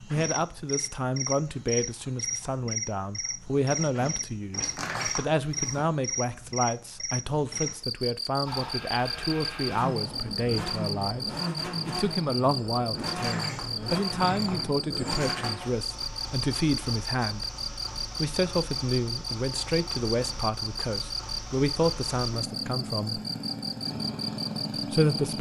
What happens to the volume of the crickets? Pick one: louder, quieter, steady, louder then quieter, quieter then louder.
steady.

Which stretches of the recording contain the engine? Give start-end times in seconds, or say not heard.
8.4-25.3.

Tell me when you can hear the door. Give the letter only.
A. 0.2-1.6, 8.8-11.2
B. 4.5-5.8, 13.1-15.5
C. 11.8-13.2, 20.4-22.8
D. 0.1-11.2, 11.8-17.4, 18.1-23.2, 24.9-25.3
B.